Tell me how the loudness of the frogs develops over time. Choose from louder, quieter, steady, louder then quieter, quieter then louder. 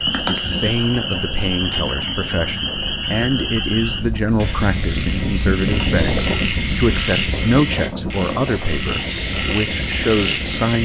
steady.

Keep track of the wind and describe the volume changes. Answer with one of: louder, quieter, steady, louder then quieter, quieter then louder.
louder then quieter.